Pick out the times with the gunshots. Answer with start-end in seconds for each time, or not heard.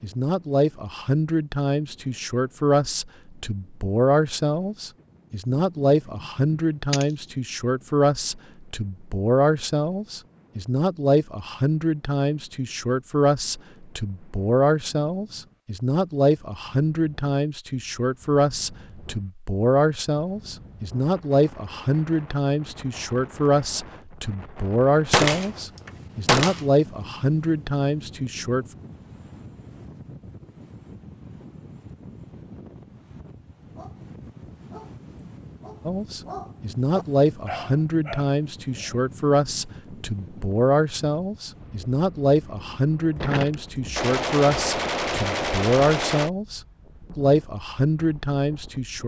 5.3-7.2, 25.1-26.6, 43.1-46.3.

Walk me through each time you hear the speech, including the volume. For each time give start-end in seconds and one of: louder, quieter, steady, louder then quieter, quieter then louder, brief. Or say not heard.
0.0-28.6 steady
35.9-49.0 steady.